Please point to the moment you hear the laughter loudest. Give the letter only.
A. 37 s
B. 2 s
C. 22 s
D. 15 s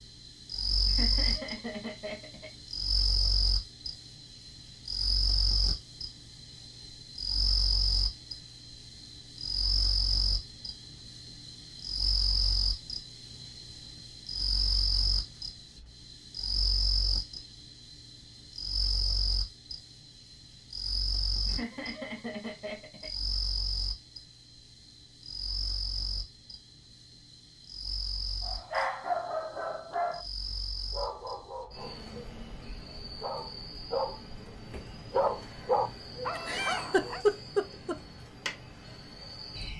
A.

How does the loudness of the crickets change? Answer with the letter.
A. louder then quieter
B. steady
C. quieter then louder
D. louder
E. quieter
E.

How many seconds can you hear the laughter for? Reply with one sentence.
You can hear the laughter for 5 seconds altogether.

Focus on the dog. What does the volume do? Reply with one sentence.
The volume of the dog goes down, then up.